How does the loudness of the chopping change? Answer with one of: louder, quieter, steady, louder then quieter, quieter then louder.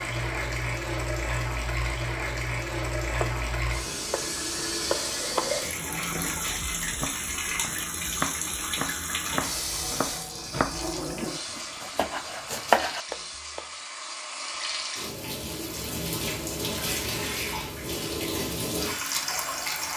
quieter then louder.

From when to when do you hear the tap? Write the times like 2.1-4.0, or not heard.
0.0-19.9.